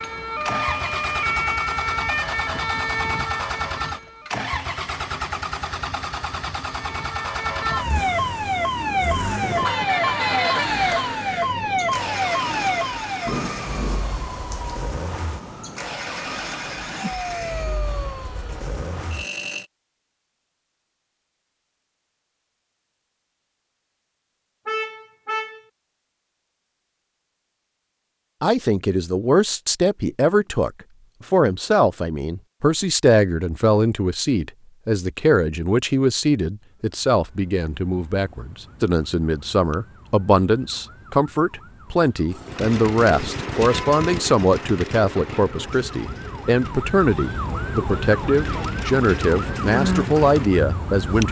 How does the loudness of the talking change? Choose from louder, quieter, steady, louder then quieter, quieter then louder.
steady.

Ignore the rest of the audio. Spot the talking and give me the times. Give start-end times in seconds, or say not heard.
28.4-51.2.